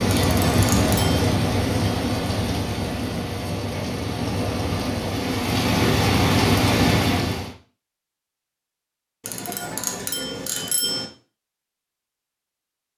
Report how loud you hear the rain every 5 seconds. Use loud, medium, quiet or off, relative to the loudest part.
loud, loud, off.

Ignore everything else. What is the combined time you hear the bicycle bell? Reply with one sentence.
The bicycle bell can be heard for 3 seconds in total.